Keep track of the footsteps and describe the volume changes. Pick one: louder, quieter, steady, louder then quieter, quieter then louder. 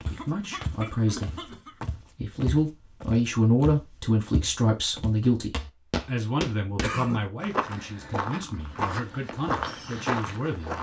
louder.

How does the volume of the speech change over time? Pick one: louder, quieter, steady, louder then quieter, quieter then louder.
louder then quieter.